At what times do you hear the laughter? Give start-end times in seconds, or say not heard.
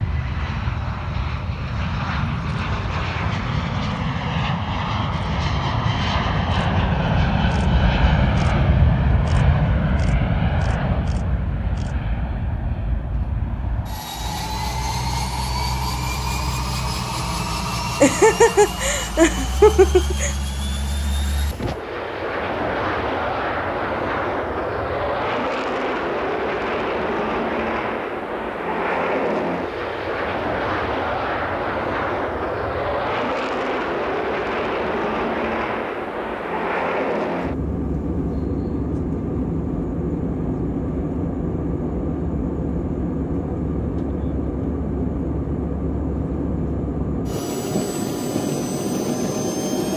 18.0-20.4.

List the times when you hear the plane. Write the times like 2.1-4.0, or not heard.
0.0-49.9.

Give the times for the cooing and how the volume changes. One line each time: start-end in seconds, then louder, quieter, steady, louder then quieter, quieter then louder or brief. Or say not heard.
not heard.